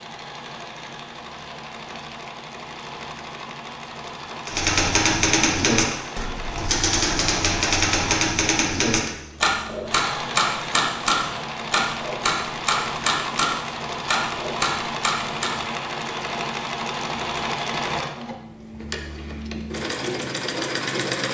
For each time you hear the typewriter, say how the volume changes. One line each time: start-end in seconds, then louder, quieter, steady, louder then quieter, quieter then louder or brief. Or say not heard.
4.5-15.6 steady.